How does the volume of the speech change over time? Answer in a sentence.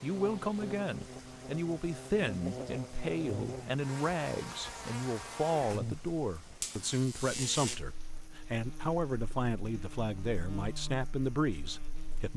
The loudness of the speech stays about the same.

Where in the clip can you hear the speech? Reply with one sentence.
The speech can be heard from 0.0 to 12.3 s.